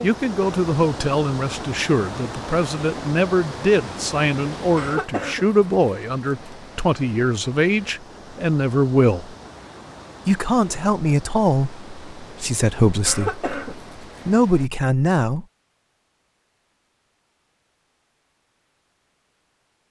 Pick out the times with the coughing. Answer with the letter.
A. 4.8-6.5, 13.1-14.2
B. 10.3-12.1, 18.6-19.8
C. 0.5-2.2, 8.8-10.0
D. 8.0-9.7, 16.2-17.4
A.